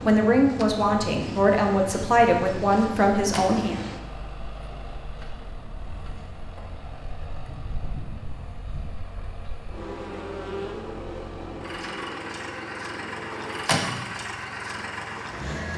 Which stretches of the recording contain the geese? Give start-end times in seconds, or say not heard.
not heard.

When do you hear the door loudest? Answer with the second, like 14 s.
14 s.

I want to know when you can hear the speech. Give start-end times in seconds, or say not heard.
0.0-3.8.